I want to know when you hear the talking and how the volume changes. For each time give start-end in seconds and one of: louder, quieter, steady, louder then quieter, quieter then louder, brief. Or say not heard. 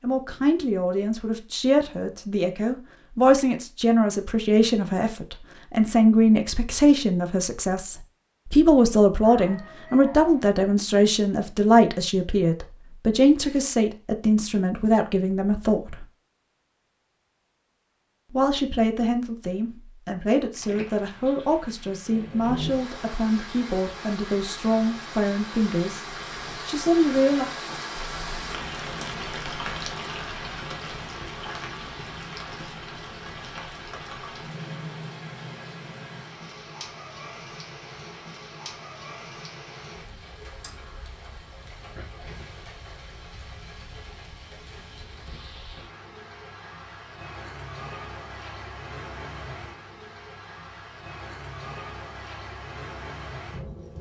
0.0-16.1 steady
18.3-27.4 steady.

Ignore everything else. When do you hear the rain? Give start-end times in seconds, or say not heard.
20.5-53.9.